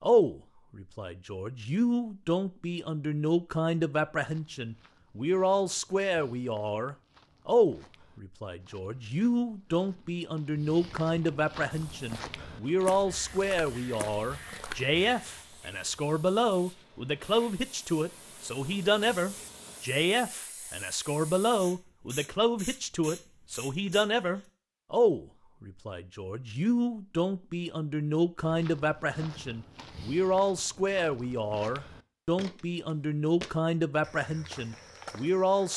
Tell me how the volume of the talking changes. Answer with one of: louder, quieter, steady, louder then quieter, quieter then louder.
steady.